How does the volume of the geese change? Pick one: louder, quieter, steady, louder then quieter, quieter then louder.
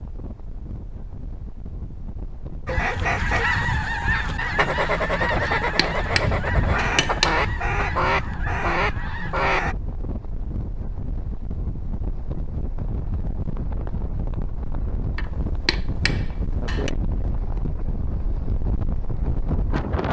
steady.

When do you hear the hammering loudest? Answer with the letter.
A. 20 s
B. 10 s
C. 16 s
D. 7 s
D.